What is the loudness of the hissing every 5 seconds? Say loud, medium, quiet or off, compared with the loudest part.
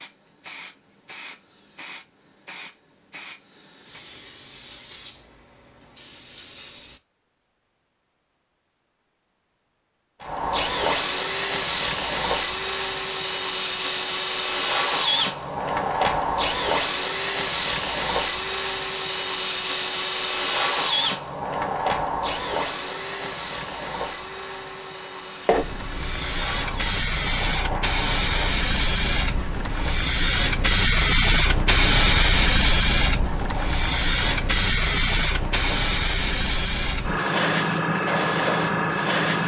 quiet, quiet, off, off, off, medium, loud, loud.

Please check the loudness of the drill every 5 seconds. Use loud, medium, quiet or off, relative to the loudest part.
off, off, loud, loud, loud, quiet, quiet, quiet.